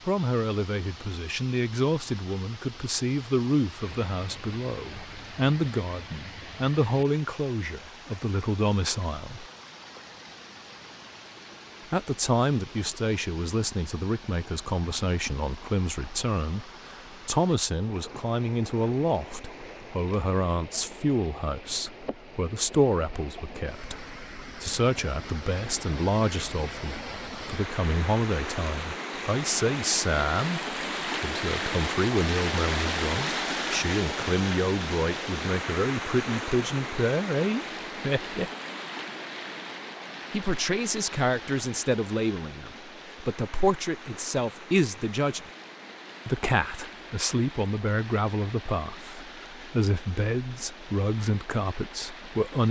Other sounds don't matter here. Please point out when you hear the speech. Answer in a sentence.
You can hear the speech from 0.1 to 9.4 s, from 11.9 to 38.5 s, from 40.3 to 45.5 s and from 46.2 to 52.6 s.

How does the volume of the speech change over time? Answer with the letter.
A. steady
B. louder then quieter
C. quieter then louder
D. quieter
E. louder
A.